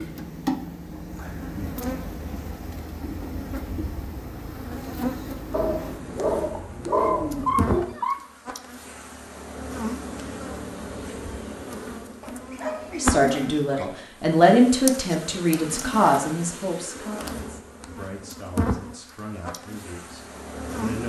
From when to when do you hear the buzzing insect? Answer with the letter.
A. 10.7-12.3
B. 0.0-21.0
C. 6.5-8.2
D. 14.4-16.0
B.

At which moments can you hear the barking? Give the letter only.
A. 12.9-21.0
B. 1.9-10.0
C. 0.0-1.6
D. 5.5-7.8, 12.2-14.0
D.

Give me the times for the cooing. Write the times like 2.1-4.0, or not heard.
6.5-8.2.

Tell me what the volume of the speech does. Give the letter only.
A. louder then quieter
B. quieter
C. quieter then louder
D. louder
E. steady
B.